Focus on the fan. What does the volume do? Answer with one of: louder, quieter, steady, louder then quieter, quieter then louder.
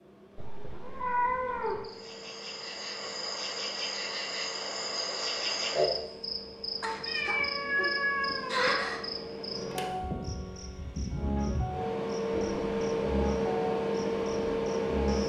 louder.